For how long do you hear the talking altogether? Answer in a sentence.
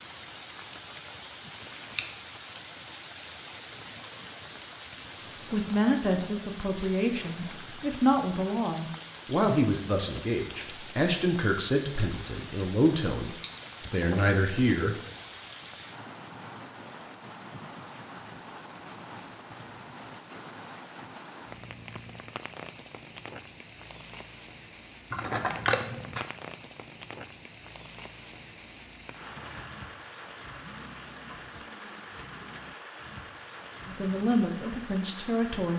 You can hear the talking for 11 seconds altogether.